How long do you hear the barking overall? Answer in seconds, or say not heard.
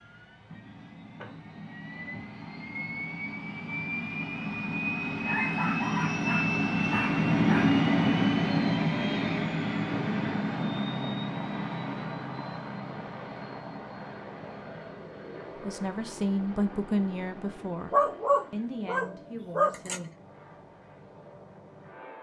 5 s.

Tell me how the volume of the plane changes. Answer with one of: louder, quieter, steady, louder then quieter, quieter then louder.
louder then quieter.